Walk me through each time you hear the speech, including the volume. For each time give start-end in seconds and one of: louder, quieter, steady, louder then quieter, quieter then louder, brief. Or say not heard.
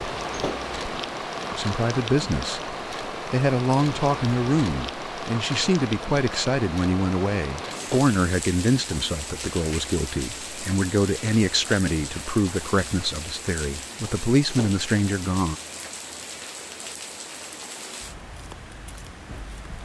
1.5-2.6 brief
3.2-15.6 steady.